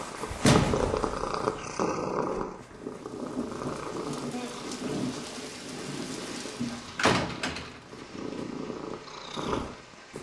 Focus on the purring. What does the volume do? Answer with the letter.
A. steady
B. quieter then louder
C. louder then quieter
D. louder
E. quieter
B.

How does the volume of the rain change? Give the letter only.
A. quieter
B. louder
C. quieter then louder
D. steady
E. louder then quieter
A.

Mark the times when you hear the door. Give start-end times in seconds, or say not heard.
0.4-1.1, 6.7-7.8.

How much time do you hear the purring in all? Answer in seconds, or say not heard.
10 s.